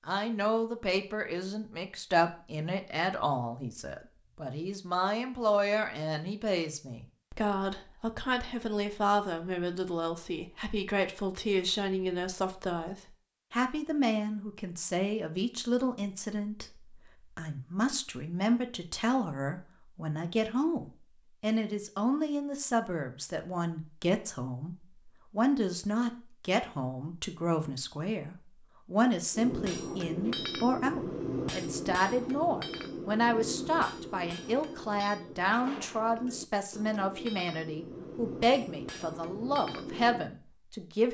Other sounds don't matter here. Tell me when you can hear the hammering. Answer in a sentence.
You can hear the hammering from 29.3 to 40.2 s.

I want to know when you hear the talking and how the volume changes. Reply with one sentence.
The talking can be heard from 0.1 to 41.1 s, at a steady volume.